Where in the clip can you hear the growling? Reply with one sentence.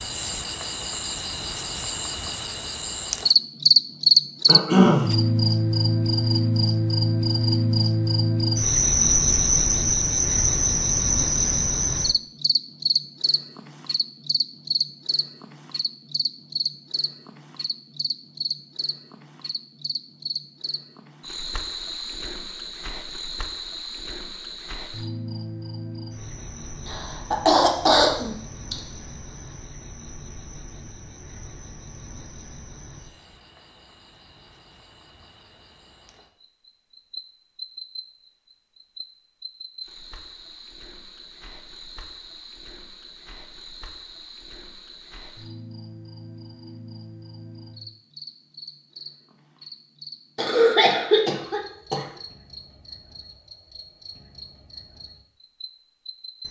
The growling can't be heard in this clip.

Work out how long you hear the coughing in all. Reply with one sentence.
You can hear the coughing for 4 seconds altogether.